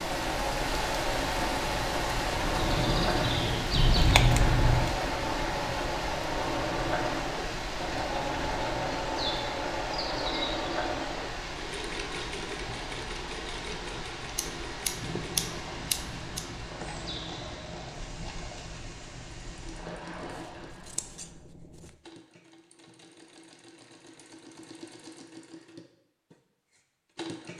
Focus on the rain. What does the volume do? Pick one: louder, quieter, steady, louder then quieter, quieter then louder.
quieter.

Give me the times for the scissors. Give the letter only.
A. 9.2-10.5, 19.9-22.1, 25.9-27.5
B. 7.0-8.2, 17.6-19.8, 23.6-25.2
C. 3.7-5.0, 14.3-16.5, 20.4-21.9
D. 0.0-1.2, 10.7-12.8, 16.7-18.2
C.